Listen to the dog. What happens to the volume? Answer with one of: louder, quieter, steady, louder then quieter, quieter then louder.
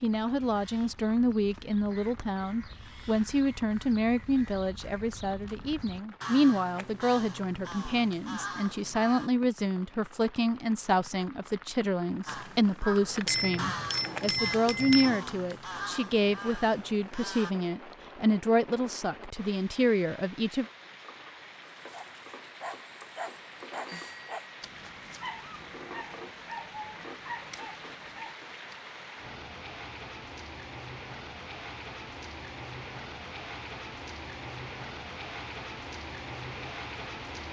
steady.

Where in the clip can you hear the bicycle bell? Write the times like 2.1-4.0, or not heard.
13.2-15.2, 23.9-24.4.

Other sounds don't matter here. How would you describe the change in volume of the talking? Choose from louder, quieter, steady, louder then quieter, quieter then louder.
steady.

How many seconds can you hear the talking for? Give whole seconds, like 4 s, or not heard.
21 s.